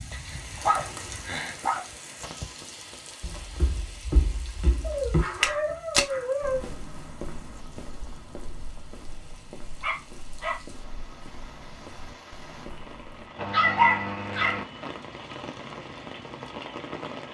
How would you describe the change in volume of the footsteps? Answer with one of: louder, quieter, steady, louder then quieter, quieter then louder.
quieter.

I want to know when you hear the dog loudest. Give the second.
14 s.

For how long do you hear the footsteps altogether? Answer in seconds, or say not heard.
10 s.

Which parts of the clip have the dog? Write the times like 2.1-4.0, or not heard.
0.1-1.9, 4.8-6.7, 9.8-10.6, 13.3-14.7.